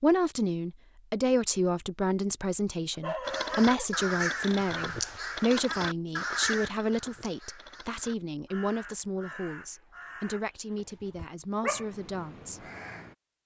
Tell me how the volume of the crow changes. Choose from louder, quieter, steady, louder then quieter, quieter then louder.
quieter.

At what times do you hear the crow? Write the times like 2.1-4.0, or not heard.
3.2-13.2.